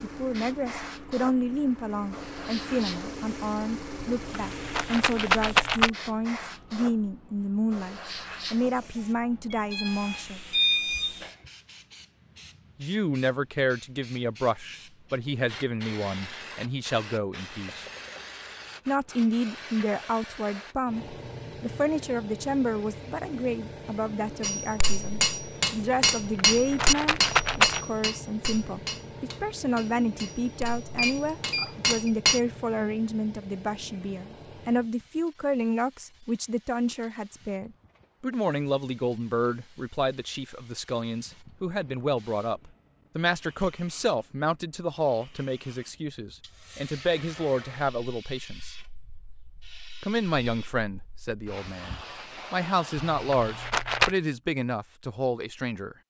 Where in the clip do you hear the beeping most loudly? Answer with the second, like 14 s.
11 s.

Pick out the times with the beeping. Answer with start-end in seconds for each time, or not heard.
9.5-11.3, 30.9-32.0.